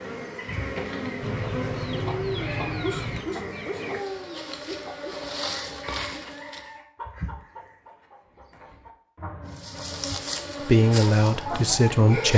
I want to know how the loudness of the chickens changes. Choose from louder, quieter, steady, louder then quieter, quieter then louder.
quieter then louder.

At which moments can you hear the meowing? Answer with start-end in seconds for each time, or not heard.
1.2-3.2.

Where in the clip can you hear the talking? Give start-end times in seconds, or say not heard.
10.7-12.3.